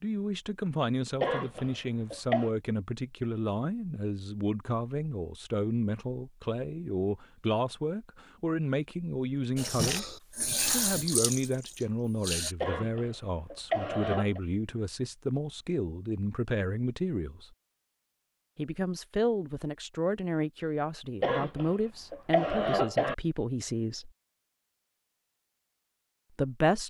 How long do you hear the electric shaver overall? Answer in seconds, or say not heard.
not heard.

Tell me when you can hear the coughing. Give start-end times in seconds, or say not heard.
1.2-2.5, 12.6-14.4, 21.2-23.1.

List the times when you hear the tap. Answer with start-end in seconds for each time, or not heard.
9.6-12.6.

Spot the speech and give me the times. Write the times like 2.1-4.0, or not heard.
0.0-17.5, 18.6-24.1, 26.4-26.8.